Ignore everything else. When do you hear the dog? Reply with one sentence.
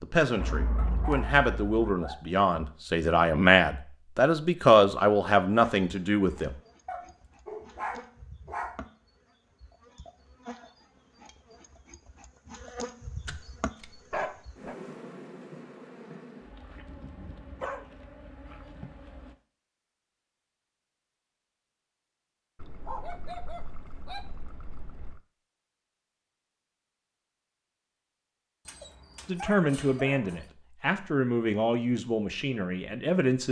The dog can be heard from 0.8 to 2.3 s, from 6.8 to 8.8 s, from 13.2 to 14.8 s, from 16.9 to 19.2 s, from 22.8 to 24.2 s and from 28.6 to 30.5 s.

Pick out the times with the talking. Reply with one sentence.
The talking can be heard from 0.0 to 6.5 s and from 29.2 to 33.4 s.